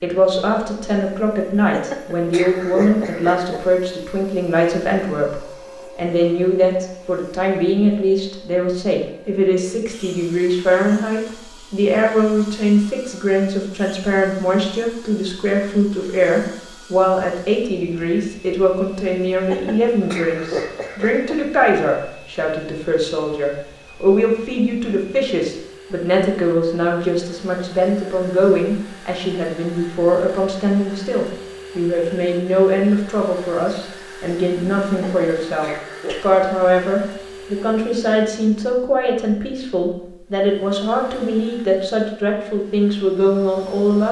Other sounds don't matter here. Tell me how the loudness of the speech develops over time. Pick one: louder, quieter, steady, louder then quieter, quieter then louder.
steady.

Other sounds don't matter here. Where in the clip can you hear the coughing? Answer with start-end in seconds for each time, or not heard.
1.7-3.6, 19.4-21.4, 35.0-36.2.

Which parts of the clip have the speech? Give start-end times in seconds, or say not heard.
0.0-44.0.